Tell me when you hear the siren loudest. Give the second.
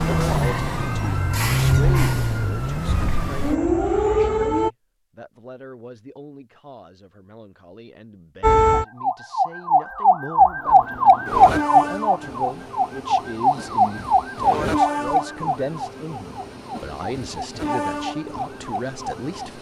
11 s.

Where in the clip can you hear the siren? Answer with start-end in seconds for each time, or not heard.
0.0-4.7, 8.4-19.5.